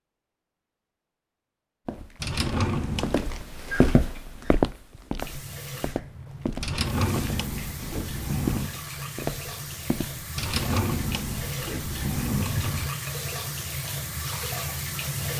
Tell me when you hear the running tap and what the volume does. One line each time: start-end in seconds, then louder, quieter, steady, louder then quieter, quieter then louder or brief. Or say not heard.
5.2-15.3 louder.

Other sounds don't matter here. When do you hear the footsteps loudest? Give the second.
4 s.